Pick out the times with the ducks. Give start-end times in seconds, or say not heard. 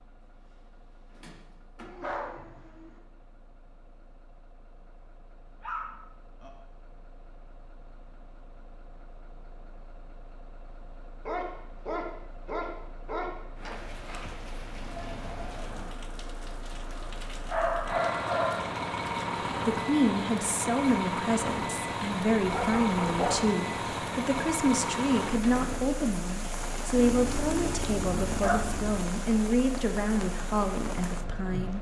not heard.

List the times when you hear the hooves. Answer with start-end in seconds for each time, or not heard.
not heard.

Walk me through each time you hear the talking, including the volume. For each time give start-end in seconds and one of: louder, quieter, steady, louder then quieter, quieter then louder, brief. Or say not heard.
19.6-31.7 steady.